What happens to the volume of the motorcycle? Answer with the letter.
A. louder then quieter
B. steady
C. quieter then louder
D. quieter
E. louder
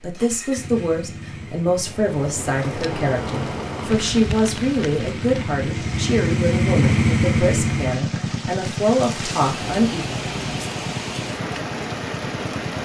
A.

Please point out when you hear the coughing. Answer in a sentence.
The coughing can't be heard in this clip.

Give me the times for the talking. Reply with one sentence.
The talking can be heard from 0.0 to 10.1 s.